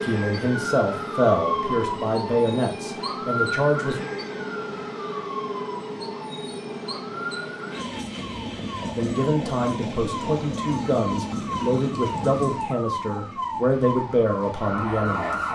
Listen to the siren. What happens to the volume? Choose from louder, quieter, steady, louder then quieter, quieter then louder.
quieter then louder.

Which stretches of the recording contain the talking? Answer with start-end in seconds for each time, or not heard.
0.0-4.0, 8.9-15.3.